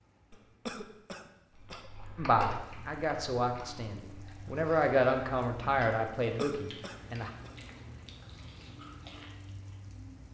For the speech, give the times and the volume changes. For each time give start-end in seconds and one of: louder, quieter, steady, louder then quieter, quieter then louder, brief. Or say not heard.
2.1-7.3 louder then quieter.